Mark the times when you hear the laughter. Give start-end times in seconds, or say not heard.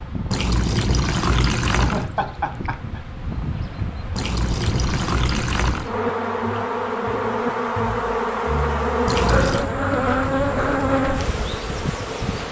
1.8-3.0.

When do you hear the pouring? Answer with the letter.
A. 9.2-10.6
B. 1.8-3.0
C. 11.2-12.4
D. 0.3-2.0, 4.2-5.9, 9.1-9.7
D.